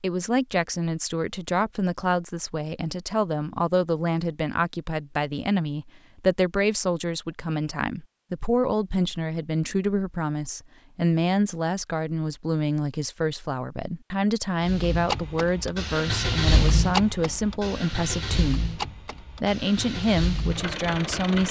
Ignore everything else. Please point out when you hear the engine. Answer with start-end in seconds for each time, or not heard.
14.6-21.4.